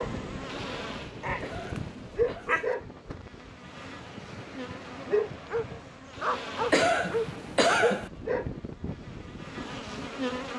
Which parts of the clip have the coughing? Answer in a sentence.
The coughing can be heard from 1.4 to 2.5 s and from 6.7 to 8.1 s.